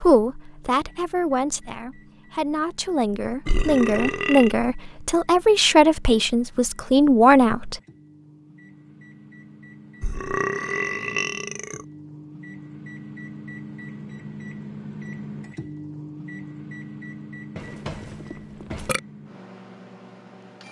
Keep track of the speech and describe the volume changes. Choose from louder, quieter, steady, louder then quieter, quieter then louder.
louder.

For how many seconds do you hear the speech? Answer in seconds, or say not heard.
8 s.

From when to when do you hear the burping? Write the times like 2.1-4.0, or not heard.
3.5-4.5, 10.0-11.8, 17.6-19.0.